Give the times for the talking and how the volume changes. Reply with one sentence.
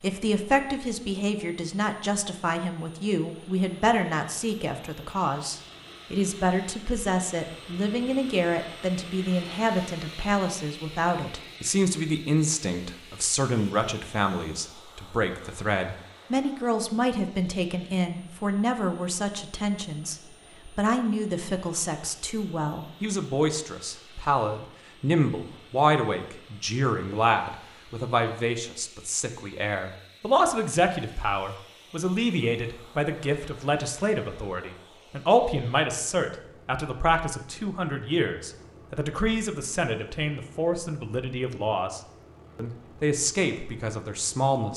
You can hear the talking from 0.0 to 44.7 s, at a steady volume.